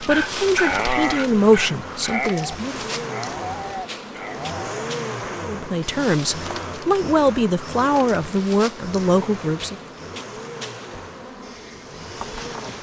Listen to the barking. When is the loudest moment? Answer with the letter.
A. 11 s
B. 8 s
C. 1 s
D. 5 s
C.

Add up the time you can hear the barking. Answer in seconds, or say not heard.
5 s.